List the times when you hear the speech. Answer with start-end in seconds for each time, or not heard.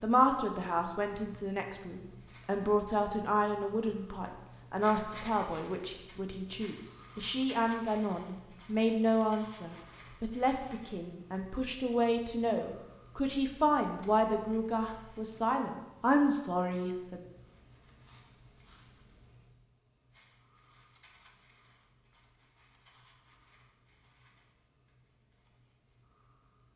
0.0-17.2.